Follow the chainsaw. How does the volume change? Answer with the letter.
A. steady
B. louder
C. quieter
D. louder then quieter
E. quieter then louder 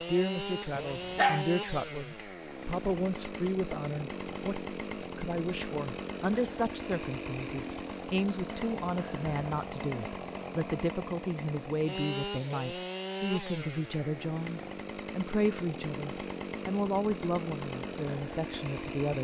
A.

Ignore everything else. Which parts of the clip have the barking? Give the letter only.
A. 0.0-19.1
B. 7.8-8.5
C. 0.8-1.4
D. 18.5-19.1
C.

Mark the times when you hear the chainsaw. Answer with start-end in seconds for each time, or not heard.
0.0-19.1.